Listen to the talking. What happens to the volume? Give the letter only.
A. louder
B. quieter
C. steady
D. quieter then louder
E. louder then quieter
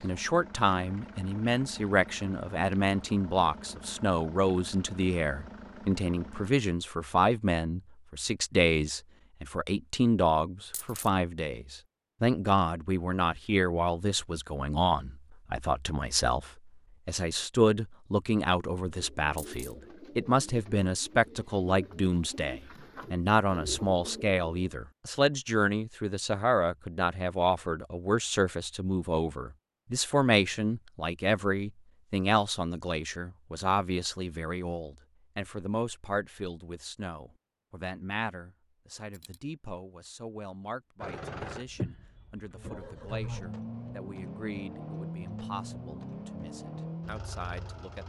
B.